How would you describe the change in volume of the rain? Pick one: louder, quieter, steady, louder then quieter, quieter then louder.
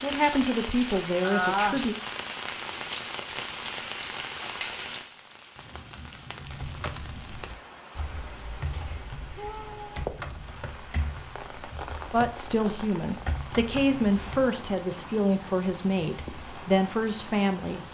quieter.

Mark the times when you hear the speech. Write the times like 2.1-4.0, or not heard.
0.0-1.9, 12.1-17.8.